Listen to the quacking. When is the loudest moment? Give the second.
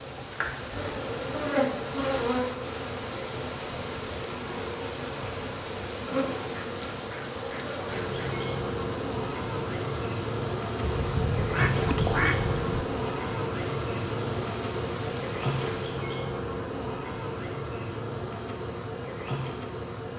12 s.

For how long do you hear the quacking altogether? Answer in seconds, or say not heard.
4 s.